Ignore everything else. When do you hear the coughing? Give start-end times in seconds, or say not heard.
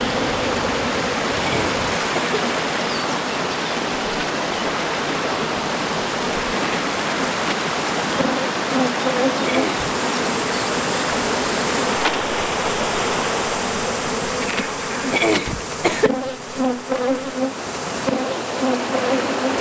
1.4-2.4, 9.4-9.9, 15.1-16.1.